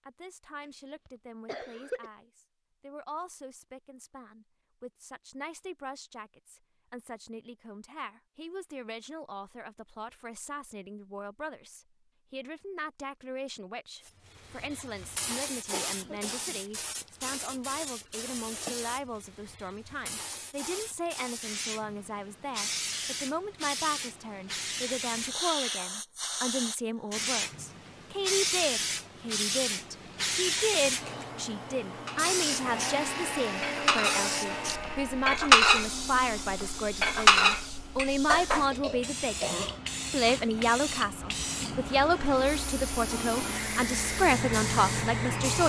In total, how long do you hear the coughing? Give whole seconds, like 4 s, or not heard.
4 s.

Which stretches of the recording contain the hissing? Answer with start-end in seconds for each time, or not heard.
14.0-45.6.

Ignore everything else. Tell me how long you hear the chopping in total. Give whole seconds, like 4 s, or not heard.
not heard.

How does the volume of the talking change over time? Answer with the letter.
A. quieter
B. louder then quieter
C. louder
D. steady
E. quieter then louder
C.